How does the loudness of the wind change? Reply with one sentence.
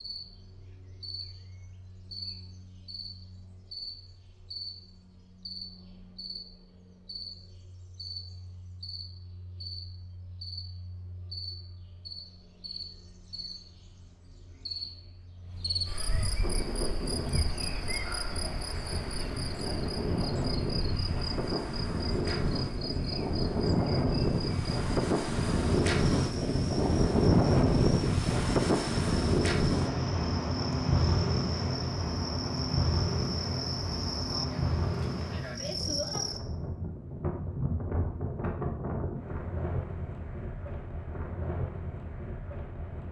The loudness of the wind goes up, then down.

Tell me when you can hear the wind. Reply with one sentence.
You can hear the wind from 16.4 to 43.0 s.